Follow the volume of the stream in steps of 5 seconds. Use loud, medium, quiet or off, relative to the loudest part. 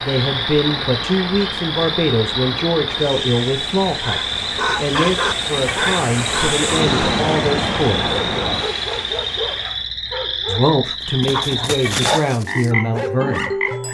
medium, loud, off.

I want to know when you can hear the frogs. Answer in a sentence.
The frogs can be heard from 0.0 to 13.9 s.